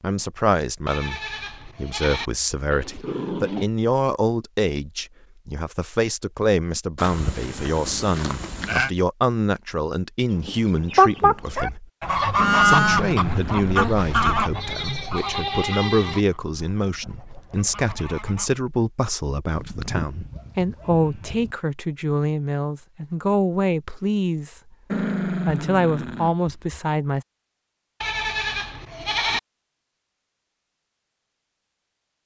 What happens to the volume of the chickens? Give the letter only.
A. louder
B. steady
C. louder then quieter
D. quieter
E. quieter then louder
D.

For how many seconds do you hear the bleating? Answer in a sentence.
The bleating can be heard for 10 seconds in total.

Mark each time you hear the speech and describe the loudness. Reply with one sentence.
The speech can be heard from 0.0 to 11.8 s, at a steady volume; from 12.6 to 24.6 s, at a steady volume; and briefly from 25.2 to 27.2 s.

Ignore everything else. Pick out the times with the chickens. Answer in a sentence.
The chickens can be heard from 10.4 to 18.5 s.